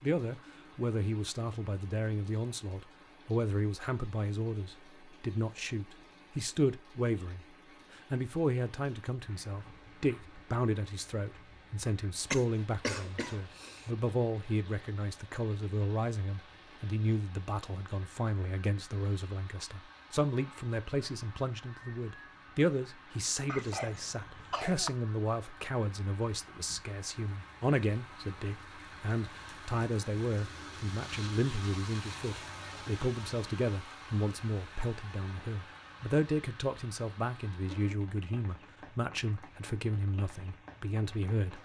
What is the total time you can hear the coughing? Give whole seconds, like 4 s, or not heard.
3 s.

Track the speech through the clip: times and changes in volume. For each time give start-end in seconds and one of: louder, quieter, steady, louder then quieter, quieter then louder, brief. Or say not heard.
0.0-41.5 steady.